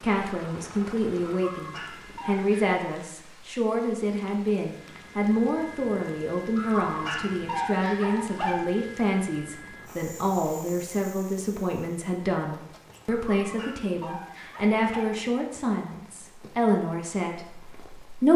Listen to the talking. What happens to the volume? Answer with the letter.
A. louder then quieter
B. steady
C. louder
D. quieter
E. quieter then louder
B.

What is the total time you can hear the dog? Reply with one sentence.
The dog can be heard for 5 seconds in total.